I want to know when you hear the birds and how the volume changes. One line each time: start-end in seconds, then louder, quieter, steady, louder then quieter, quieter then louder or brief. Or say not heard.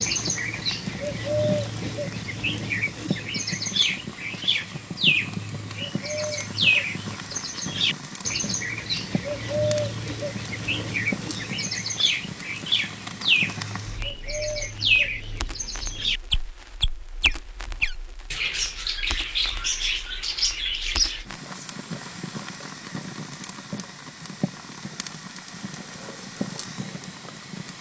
0.0-21.2 steady.